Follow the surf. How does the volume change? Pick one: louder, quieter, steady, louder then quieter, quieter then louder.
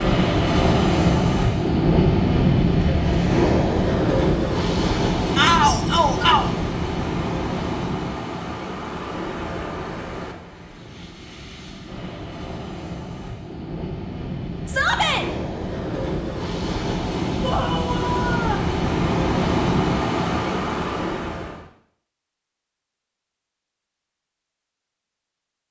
quieter then louder.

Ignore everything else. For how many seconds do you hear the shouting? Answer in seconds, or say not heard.
3 s.